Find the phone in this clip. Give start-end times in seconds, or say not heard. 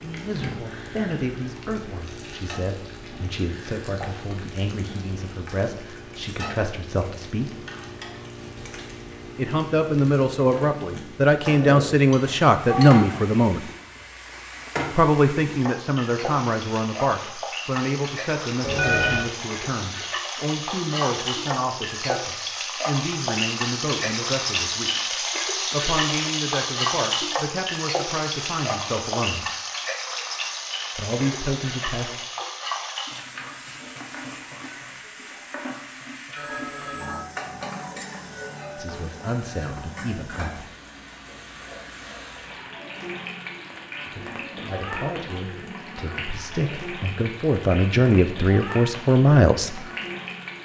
12.1-13.1, 18.6-19.2, 36.4-37.2.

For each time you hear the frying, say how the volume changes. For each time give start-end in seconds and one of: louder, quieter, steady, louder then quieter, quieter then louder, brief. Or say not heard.
0.0-50.6 louder then quieter.